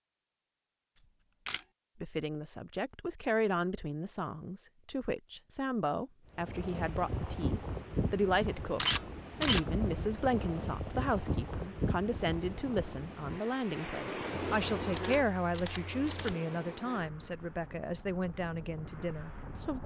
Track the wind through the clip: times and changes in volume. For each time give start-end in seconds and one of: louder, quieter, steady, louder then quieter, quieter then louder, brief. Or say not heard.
6.3-19.8 quieter.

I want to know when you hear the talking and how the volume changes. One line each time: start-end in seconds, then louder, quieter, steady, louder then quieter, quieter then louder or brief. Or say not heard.
2.0-19.8 steady.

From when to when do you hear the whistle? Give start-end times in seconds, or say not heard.
not heard.